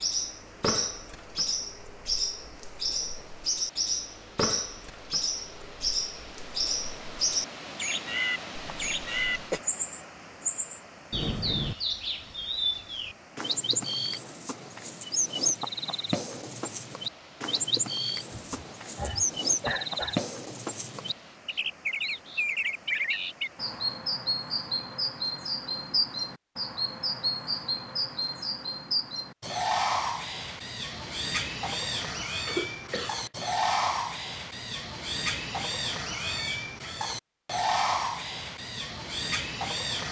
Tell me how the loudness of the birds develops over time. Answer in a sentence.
The loudness of the birds stays about the same.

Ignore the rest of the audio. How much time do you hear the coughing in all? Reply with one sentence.
You can hear the coughing for 4 seconds altogether.